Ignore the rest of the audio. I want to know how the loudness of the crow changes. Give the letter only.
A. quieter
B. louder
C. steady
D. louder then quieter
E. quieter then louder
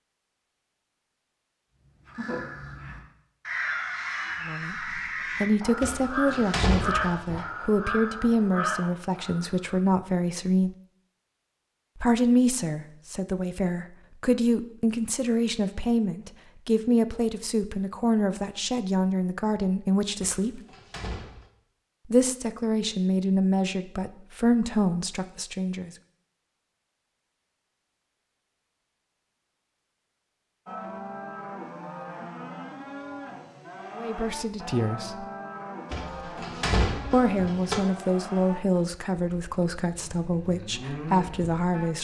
C.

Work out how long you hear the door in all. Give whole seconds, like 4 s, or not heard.
5 s.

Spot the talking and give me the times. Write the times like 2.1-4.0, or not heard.
4.4-10.8, 11.9-20.6, 22.1-25.9, 34.0-35.2, 37.1-41.9.